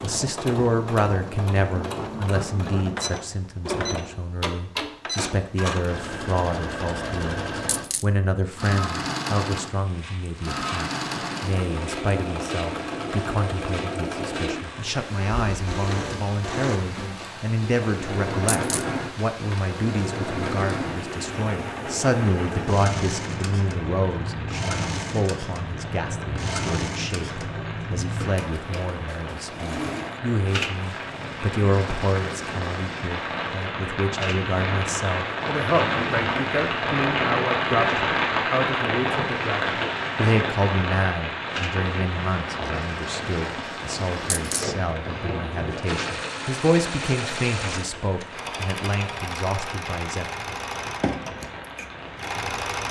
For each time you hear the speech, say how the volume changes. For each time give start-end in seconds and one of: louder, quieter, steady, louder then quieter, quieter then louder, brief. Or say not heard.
0.0-50.3 steady.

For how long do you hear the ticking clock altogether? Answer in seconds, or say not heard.
not heard.